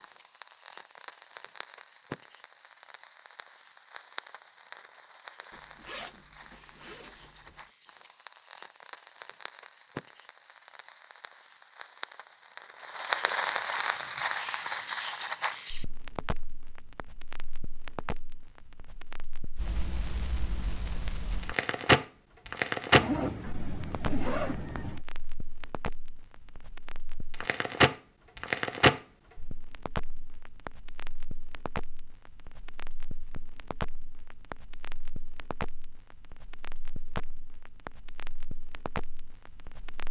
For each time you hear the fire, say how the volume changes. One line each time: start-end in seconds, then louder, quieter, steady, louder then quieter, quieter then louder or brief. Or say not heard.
0.0-40.0 louder then quieter.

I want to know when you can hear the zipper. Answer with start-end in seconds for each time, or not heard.
5.5-7.6, 22.9-25.1.